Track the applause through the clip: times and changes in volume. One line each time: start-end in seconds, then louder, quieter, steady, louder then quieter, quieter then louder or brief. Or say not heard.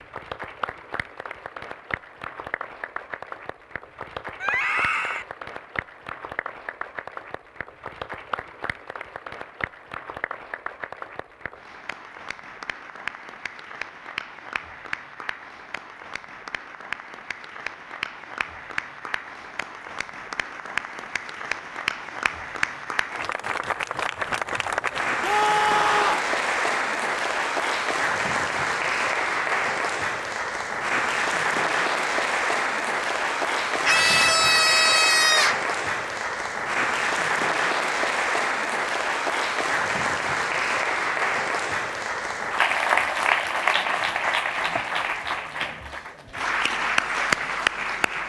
0.0-48.2 louder.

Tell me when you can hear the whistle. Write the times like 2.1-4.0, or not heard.
not heard.